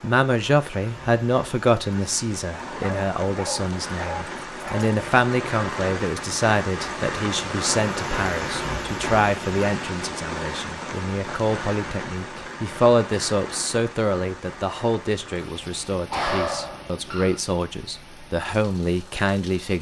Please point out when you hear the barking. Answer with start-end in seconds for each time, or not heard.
2.5-5.0, 16.1-17.4.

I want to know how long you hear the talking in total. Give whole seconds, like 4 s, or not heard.
20 s.